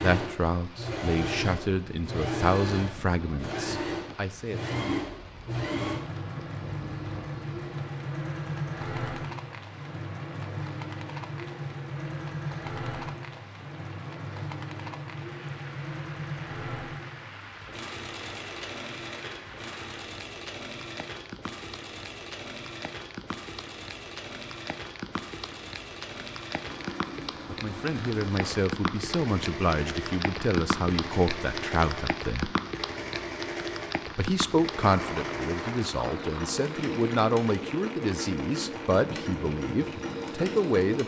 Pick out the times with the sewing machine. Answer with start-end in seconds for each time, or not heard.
0.0-41.0.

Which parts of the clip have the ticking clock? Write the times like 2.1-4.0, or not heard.
not heard.